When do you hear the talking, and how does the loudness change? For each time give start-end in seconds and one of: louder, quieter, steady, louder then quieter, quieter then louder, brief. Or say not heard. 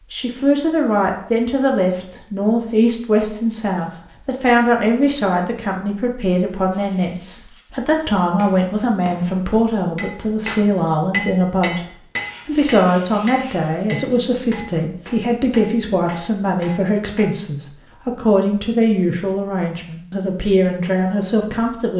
0.1-21.9 steady.